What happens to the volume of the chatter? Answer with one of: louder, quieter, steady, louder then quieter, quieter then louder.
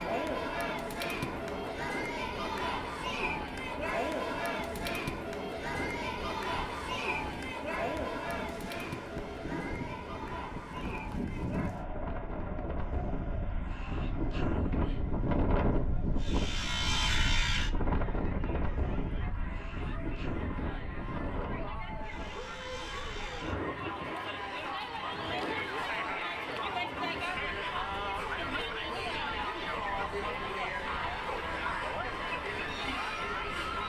quieter then louder.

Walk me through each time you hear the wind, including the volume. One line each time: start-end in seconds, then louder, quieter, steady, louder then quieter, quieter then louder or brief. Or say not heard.
0.0-33.8 louder then quieter.